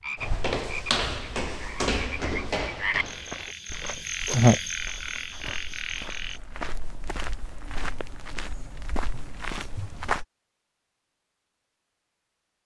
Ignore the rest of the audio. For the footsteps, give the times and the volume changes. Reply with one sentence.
The footsteps can be heard from 0.1 to 10.2 s, getting quieter then louder.